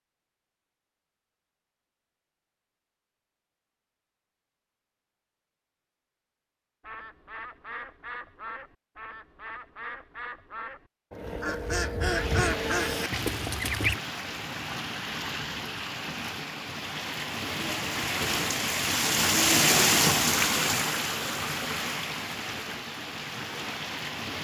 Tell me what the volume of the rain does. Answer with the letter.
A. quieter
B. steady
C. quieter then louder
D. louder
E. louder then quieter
E.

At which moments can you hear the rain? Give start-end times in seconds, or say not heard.
12.0-24.3.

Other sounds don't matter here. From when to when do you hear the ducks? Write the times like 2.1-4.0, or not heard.
6.8-14.0.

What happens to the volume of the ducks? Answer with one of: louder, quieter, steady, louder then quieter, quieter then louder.
louder.